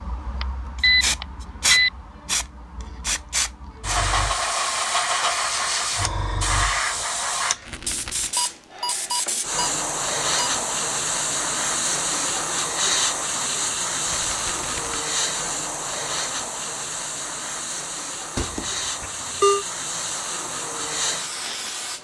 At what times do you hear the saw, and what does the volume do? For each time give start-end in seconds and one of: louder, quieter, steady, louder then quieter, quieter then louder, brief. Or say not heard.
not heard.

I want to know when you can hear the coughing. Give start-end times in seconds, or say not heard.
not heard.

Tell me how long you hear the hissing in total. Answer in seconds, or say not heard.
22 s.